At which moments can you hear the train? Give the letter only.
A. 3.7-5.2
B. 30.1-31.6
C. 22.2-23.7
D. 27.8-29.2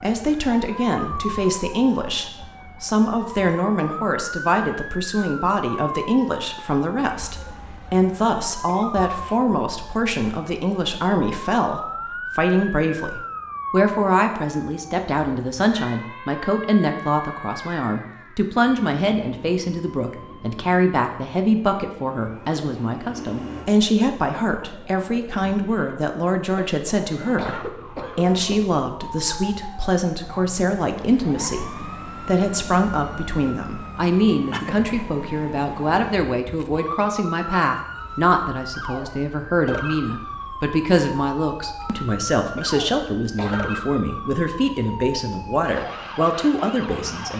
C.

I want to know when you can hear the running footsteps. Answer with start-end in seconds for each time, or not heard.
not heard.